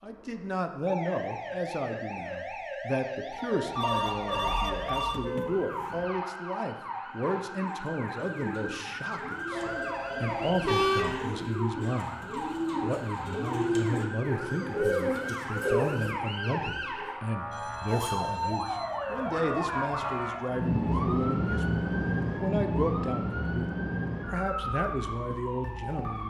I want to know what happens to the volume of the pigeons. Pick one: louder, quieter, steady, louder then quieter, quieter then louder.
louder.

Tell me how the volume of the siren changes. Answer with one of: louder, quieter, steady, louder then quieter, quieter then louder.
louder.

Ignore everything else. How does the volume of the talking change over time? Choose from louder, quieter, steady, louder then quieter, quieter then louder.
steady.